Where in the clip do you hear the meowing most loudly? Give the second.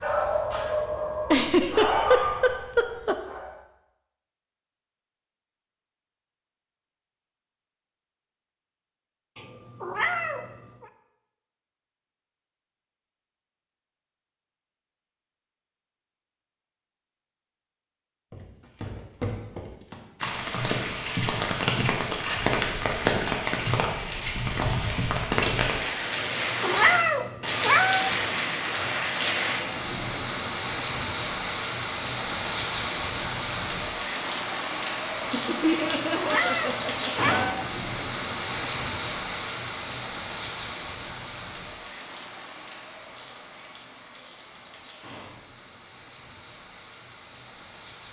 27 s.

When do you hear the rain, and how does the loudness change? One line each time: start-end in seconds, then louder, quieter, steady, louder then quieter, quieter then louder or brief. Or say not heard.
20.2-48.0 quieter.